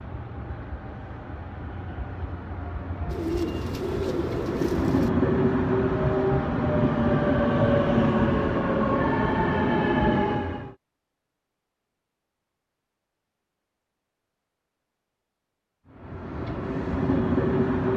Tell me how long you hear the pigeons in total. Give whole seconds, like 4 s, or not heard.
2 s.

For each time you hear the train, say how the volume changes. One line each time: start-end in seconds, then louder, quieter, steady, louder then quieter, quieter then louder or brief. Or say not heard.
0.0-10.8 louder
15.9-17.9 brief.